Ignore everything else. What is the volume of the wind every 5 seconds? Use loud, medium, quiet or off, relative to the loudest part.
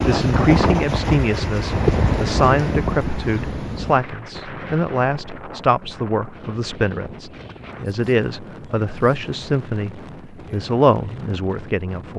loud, quiet, quiet.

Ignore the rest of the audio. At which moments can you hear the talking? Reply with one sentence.
You can hear the talking from 0.1 to 12.1 s.